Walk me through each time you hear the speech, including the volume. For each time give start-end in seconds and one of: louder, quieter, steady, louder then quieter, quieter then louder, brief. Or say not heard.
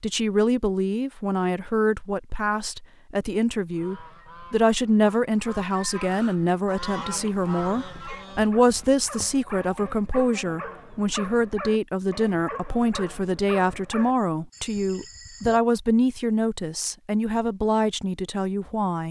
0.0-19.0 steady.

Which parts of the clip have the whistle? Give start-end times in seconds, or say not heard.
not heard.